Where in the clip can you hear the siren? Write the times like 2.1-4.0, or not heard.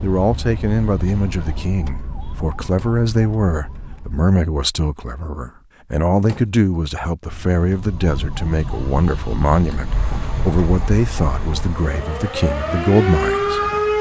0.2-4.2, 7.7-13.9.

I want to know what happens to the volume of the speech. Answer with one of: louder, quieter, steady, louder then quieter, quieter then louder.
steady.